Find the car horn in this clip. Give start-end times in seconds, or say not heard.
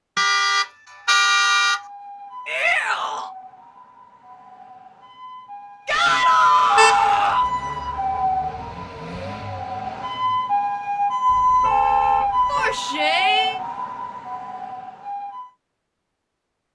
0.1-1.8, 6.8-7.2, 11.2-12.8.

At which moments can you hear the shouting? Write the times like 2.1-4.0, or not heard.
2.5-3.3, 5.8-7.5, 12.5-13.6.